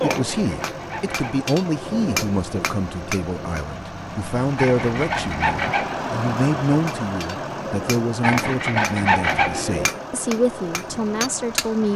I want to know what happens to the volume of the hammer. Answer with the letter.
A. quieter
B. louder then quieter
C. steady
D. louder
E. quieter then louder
E.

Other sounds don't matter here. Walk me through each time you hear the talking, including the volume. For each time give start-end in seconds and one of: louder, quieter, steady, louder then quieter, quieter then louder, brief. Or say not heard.
0.0-11.9 steady.